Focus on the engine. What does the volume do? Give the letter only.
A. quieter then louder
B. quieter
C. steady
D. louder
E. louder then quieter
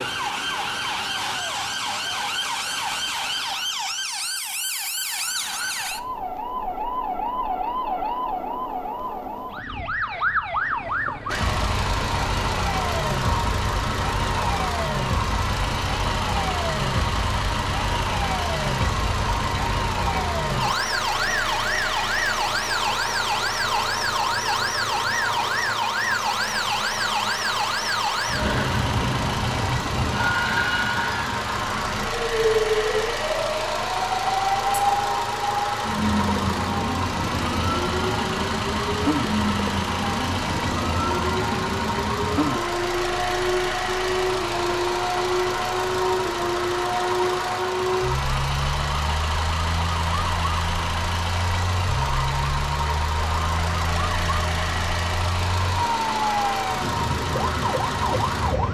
C.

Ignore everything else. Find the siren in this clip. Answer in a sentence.
The siren can be heard from 0.0 to 58.6 s.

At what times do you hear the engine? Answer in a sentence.
The engine can be heard from 11.2 to 58.6 s.